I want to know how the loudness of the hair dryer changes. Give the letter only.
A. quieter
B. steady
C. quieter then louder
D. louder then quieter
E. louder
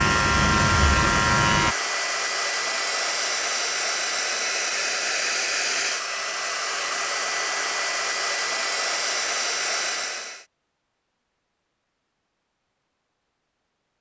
B.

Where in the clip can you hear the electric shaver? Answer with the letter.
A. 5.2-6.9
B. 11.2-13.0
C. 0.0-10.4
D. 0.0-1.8
D.